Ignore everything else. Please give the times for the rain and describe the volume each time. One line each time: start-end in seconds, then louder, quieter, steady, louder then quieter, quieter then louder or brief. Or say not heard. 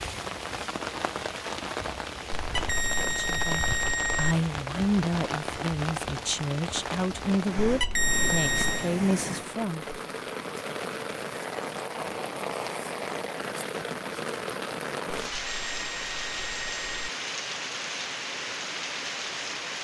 0.0-19.7 steady.